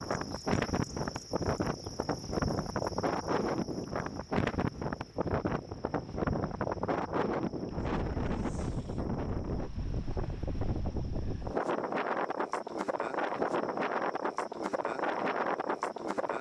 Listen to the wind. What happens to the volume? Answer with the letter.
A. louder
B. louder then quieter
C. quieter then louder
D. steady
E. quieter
D.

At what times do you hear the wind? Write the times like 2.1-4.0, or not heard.
0.0-16.3.